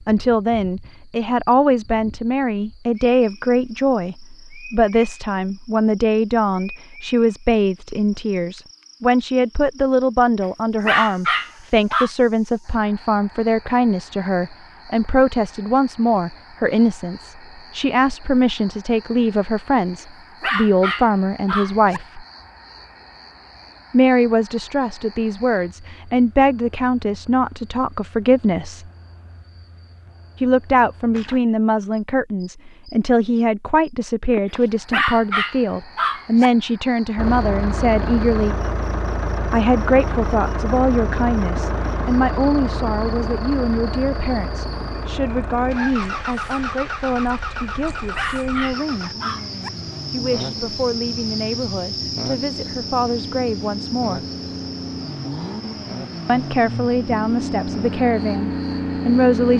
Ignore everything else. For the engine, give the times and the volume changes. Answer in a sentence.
The engine can be heard from 37.1 to 59.5 s, getting quieter then louder.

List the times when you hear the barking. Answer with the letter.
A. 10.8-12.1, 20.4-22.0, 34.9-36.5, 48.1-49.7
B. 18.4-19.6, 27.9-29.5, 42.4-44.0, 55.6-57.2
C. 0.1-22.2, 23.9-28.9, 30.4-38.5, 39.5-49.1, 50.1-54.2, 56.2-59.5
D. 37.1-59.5
A.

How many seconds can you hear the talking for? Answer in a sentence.
You can hear the talking for 52 seconds altogether.